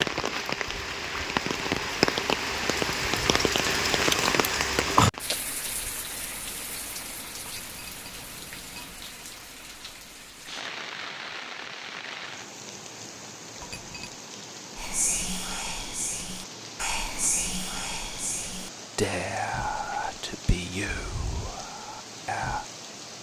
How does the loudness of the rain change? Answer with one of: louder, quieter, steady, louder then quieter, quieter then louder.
quieter.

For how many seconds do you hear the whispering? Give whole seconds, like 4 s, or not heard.
8 s.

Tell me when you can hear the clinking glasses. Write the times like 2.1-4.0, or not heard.
7.4-8.9, 13.6-14.2.